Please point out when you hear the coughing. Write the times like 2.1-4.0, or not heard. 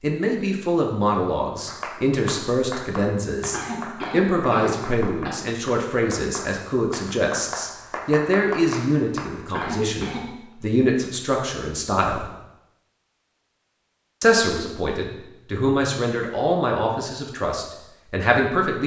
3.5-5.3, 9.5-10.3.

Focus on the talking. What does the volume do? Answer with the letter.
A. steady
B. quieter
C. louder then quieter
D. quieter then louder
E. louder
A.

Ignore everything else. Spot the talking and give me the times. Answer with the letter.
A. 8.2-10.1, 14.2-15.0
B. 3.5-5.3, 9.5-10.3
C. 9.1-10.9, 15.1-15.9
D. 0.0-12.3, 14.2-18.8
D.